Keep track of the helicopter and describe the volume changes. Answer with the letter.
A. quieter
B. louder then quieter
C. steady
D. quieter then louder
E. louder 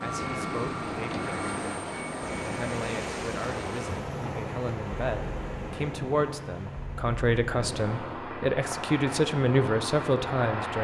D.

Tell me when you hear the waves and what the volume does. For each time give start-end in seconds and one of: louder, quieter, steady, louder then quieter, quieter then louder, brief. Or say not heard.
0.0-8.3 quieter.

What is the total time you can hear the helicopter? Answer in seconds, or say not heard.
11 s.